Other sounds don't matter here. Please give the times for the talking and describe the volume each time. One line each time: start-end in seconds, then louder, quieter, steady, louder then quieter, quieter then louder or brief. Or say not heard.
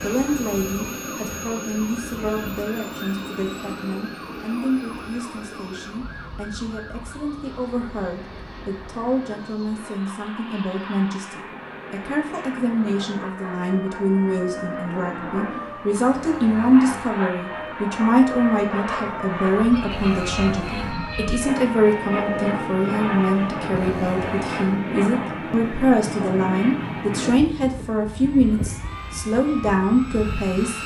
0.0-30.8 louder.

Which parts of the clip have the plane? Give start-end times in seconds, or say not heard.
0.0-30.8.